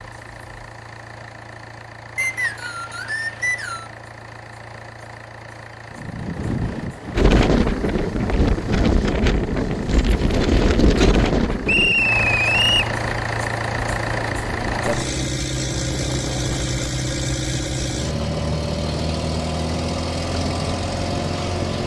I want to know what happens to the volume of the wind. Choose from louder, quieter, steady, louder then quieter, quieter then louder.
quieter.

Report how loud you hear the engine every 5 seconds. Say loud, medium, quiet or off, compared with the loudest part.
quiet, quiet, loud, loud, loud.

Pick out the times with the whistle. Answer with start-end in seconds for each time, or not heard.
2.1-3.9, 11.7-12.9.